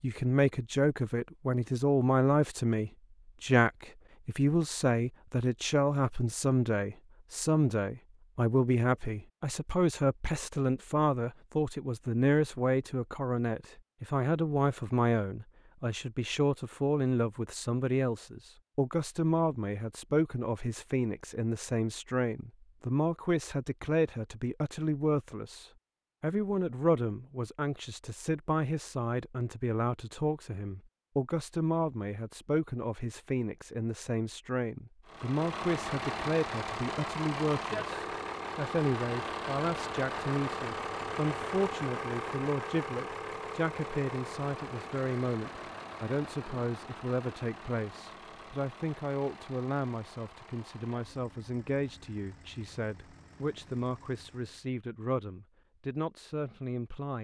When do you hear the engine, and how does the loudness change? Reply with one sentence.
You can hear the engine from 35.0 to 54.7 s, getting quieter.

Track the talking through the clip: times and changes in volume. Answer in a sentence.
You can hear the talking from 0.0 to 57.1 s, getting quieter.